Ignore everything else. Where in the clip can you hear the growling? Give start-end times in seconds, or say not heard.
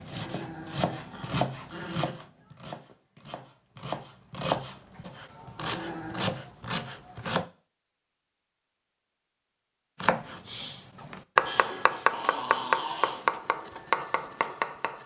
0.1-2.1, 5.5-6.5, 11.4-13.3.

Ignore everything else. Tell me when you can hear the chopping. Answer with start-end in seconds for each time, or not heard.
0.0-7.5, 10.0-15.0.